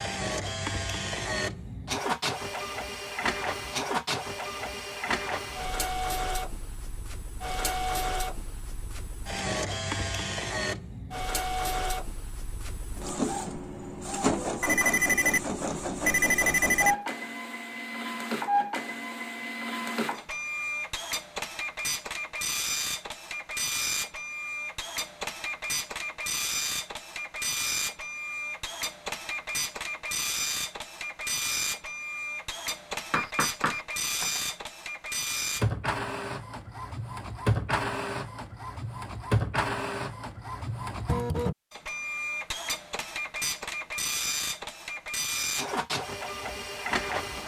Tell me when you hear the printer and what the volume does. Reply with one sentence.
The printer can be heard from 0.0 to 47.4 s, at a steady volume.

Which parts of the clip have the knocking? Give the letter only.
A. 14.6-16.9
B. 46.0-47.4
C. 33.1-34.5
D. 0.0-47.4
C.